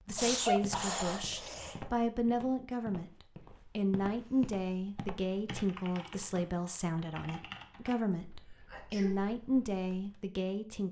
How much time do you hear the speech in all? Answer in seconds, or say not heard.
11 s.